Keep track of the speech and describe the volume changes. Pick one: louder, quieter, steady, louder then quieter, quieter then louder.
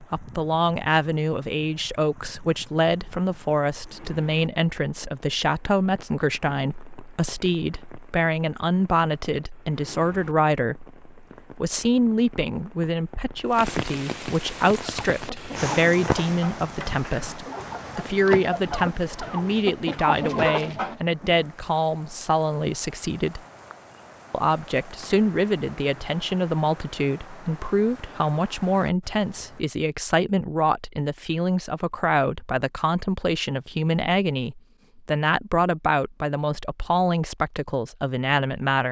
steady.